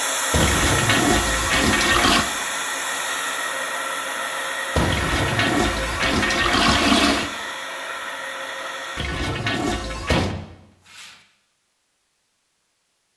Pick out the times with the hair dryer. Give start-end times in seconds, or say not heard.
0.0-9.1.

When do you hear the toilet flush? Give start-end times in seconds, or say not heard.
0.4-2.2, 4.8-7.3, 8.9-10.3.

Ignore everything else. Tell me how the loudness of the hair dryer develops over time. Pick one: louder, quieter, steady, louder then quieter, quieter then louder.
quieter.